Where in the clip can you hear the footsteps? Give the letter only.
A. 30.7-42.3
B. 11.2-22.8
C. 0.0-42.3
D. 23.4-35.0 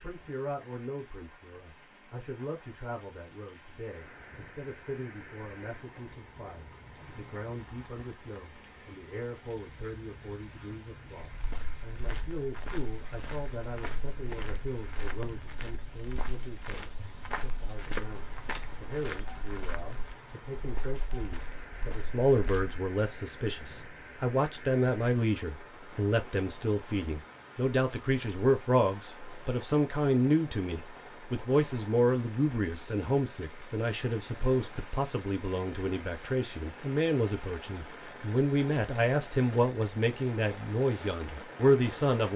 B.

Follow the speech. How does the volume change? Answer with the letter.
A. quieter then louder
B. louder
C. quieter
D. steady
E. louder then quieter
B.